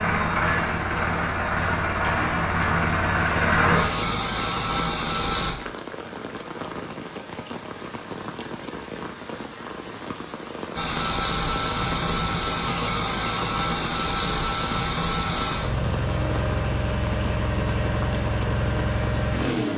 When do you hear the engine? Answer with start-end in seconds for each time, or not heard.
0.0-5.5, 10.8-19.7.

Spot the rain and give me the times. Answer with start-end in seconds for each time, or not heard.
3.1-19.7.